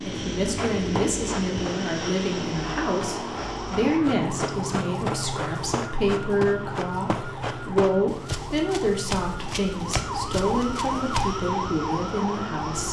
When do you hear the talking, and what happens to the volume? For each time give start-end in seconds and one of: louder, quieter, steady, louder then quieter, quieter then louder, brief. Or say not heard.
0.0-12.8 steady.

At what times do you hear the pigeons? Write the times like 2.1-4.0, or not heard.
not heard.